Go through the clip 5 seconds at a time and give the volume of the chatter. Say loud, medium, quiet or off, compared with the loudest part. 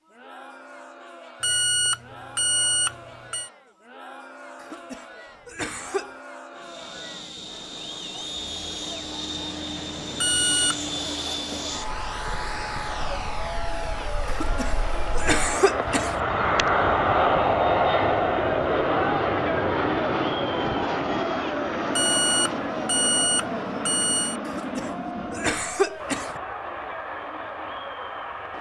quiet, quiet, medium, loud, loud, medium.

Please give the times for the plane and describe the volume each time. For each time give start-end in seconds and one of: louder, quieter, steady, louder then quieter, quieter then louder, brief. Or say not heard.
6.5-28.5 louder then quieter.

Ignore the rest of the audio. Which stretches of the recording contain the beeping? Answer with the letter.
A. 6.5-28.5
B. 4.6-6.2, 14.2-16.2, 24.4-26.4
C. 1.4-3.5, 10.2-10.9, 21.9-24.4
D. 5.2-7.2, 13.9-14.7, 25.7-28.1
C.